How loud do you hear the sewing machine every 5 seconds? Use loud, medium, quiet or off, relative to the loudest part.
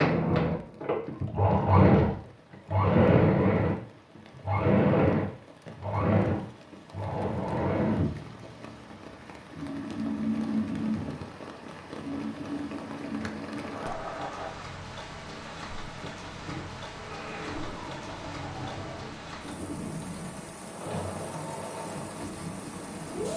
loud, medium, medium, quiet, quiet.